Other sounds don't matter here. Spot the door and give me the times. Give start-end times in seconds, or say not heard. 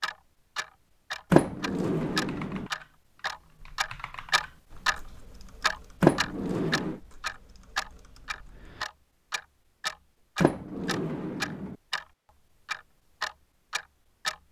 1.3-2.7, 6.0-7.0, 10.4-11.8.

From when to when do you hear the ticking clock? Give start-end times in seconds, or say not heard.
0.0-5.0, 5.6-12.1, 12.7-14.4.